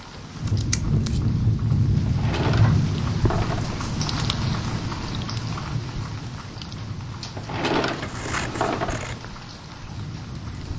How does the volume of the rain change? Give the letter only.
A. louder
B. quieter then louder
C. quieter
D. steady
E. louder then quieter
C.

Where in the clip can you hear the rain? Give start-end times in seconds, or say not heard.
0.0-10.7.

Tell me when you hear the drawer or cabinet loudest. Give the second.
8 s.